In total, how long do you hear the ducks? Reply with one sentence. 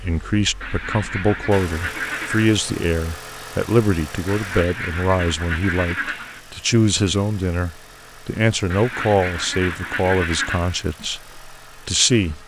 The ducks can be heard for 6 seconds in total.